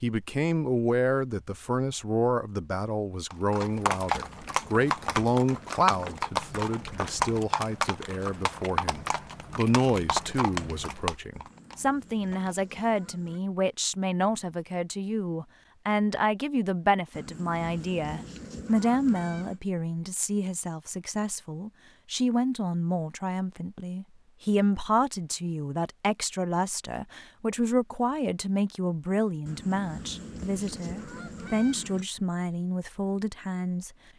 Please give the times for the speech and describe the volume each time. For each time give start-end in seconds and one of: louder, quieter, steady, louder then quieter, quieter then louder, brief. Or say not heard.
0.0-33.9 steady.